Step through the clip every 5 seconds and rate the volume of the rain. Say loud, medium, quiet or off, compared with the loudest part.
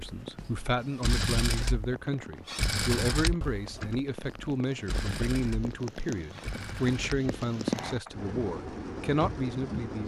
medium, loud.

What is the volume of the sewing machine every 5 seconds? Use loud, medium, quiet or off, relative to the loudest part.
loud, medium.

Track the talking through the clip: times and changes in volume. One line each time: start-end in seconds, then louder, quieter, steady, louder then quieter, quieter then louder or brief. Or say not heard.
0.0-10.0 steady.